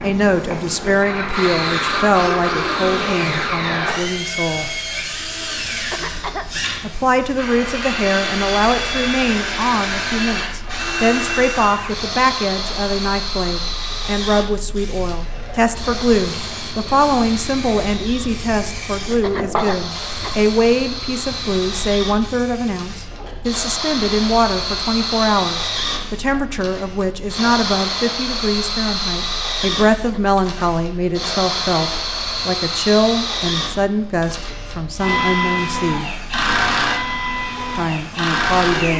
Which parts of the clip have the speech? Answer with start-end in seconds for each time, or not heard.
0.0-4.7, 6.8-36.1, 37.8-38.9.